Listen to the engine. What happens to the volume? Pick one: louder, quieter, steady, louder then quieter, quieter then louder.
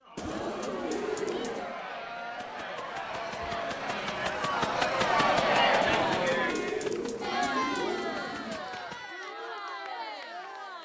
louder then quieter.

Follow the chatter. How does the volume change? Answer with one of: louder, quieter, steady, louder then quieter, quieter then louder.
louder then quieter.